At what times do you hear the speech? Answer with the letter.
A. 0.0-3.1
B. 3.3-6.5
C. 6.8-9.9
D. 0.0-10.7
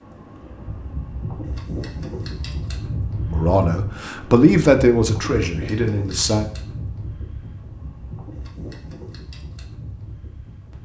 B.